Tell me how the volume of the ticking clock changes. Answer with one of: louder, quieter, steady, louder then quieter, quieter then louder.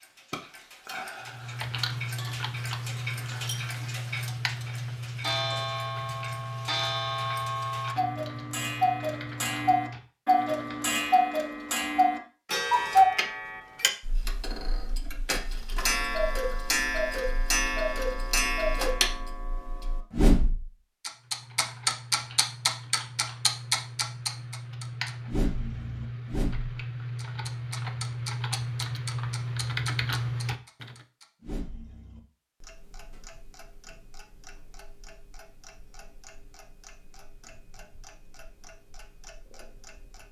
louder then quieter.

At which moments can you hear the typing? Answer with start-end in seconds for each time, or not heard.
1.2-11.1, 21.1-31.1.